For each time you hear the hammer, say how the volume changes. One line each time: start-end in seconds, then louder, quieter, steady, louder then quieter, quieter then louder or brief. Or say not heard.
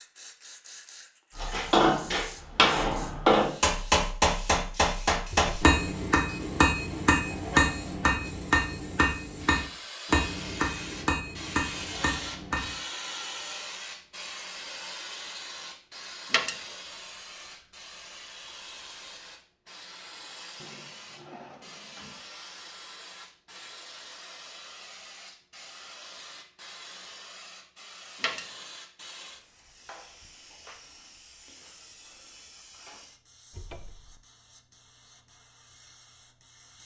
1.4-12.8 quieter.